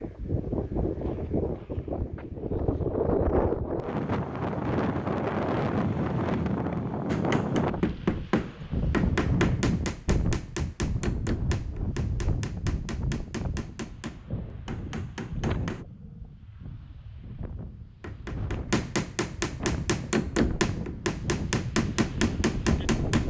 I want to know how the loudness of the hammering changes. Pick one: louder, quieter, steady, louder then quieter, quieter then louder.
quieter then louder.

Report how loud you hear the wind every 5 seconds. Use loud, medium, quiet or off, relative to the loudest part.
loud, loud, medium, medium, medium.